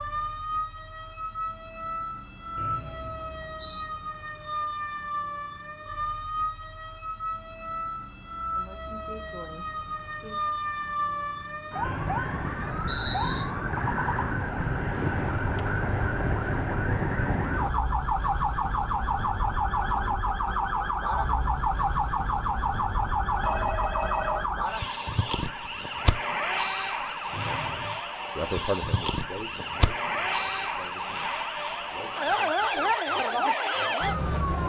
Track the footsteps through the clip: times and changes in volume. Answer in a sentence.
The footsteps can't be heard in this clip.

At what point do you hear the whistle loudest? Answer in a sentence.
The volume of the whistle peaks at 13 seconds.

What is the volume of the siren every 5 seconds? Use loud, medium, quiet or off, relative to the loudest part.
medium, medium, loud, loud, loud, loud, loud.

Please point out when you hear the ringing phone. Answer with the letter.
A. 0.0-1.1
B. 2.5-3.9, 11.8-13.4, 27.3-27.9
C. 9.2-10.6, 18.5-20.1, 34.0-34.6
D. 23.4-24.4
D.